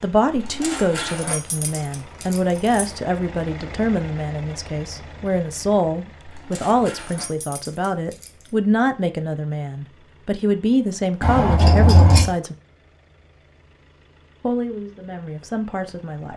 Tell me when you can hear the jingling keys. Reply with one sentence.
You can hear the jingling keys from 0.3 to 2.9 s, from 6.2 to 8.5 s and from 11.2 to 12.3 s.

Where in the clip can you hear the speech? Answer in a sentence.
The speech can be heard from 0.0 to 12.6 s and from 14.4 to 16.3 s.